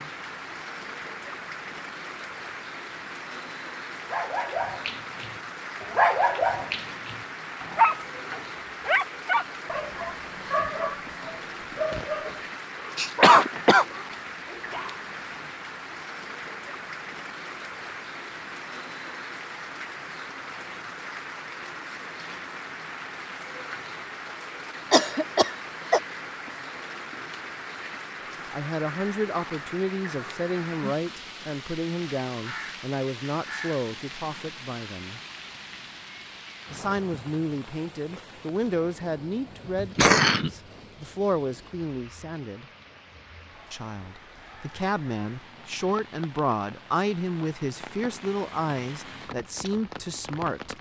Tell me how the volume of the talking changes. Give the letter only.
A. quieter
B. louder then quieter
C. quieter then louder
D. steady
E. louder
D.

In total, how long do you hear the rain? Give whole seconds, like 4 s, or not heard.
51 s.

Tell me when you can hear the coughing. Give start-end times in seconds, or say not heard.
12.9-13.8, 24.9-26.0, 39.8-40.5.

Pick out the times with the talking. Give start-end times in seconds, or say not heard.
28.5-35.2, 36.7-42.6, 43.7-50.7.